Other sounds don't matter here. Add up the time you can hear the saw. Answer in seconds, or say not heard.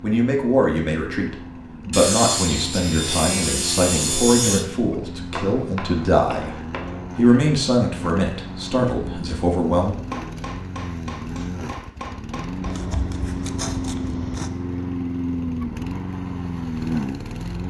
5 s.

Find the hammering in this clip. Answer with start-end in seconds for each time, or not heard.
5.3-7.1, 10.1-12.8.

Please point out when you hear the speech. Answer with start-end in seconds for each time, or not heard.
0.0-9.9.